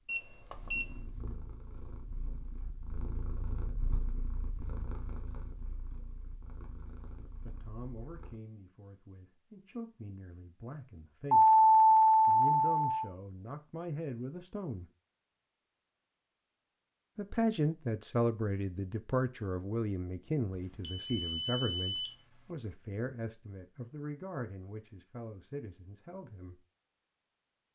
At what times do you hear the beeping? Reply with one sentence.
You can hear the beeping from 0.1 to 0.8 s, from 11.3 to 13.1 s and from 20.8 to 22.1 s.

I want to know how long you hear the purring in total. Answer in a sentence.
You can hear the purring for 8 seconds altogether.